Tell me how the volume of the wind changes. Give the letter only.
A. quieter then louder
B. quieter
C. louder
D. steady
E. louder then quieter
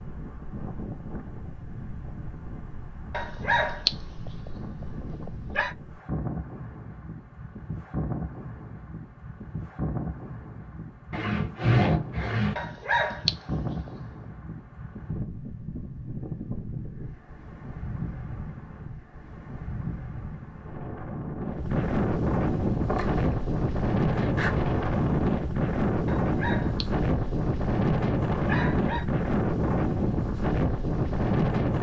C.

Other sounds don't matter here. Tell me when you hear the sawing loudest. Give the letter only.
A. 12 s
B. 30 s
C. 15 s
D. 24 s
A.